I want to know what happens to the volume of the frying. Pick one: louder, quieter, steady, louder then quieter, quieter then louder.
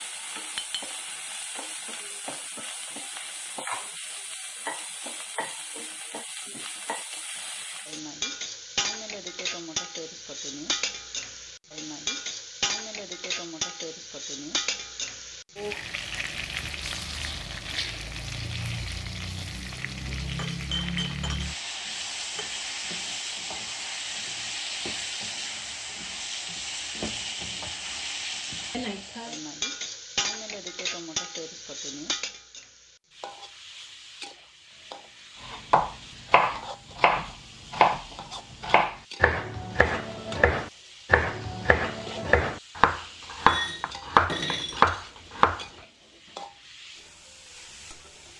quieter.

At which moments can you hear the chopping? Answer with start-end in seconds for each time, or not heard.
35.4-45.6.